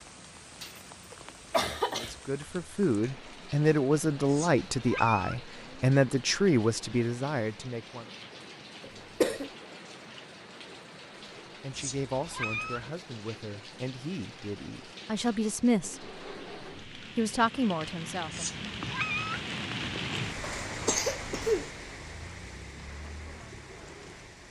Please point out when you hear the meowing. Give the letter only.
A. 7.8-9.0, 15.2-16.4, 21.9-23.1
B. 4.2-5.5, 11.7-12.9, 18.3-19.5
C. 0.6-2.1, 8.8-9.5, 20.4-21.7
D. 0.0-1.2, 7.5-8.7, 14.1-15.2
B.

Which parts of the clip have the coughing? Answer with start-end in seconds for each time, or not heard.
0.6-2.1, 8.8-9.5, 20.4-21.7.